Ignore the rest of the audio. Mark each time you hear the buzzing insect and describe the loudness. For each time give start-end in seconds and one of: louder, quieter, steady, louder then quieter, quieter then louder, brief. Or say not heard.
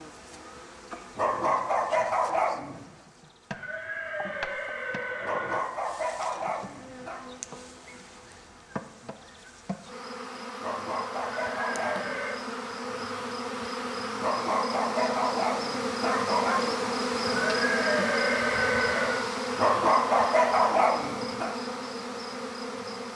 0.0-23.1 louder.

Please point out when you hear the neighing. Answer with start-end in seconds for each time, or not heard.
3.5-5.7, 11.3-12.4, 17.2-19.2.